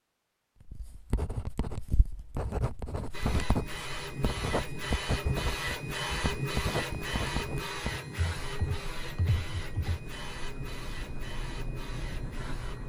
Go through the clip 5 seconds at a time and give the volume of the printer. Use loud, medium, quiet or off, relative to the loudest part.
loud, loud, medium.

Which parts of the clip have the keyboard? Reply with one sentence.
The keyboard can be heard from 8.0 to 10.0 s.